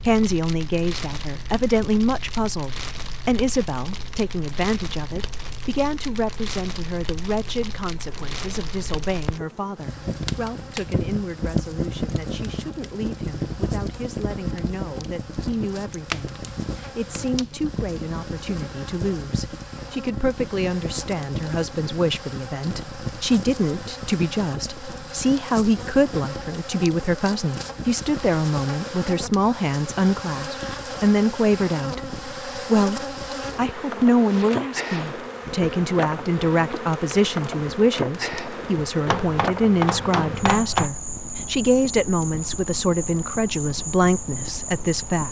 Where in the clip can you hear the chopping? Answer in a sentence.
The chopping can be heard from 39.0 to 41.0 s.